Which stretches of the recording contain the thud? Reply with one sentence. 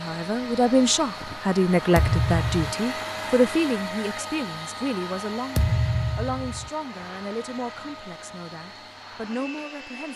You can hear the thud from 1.9 to 2.8 s and from 5.5 to 6.7 s.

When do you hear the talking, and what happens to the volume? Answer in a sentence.
You can hear the talking from 0.0 to 10.1 s, getting quieter.